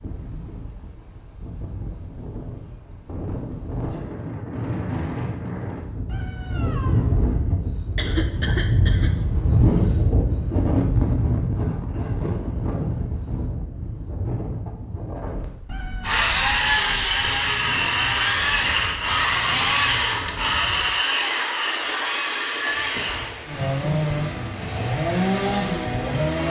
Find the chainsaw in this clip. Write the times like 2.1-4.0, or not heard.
16.0-26.4.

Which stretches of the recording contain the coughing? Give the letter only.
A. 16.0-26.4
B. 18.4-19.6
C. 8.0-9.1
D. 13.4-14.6
C.